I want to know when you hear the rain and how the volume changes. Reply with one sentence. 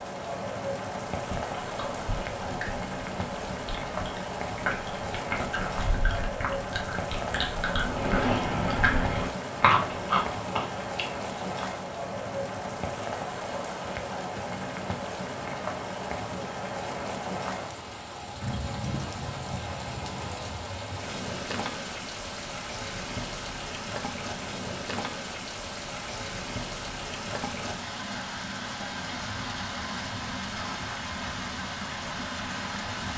You can hear the rain from 0.0 to 33.1 s, at a steady volume.